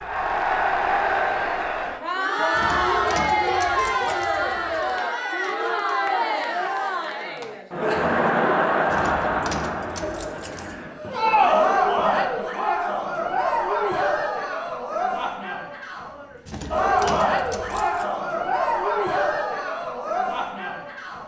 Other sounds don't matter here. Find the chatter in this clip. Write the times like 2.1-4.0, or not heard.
0.0-21.2.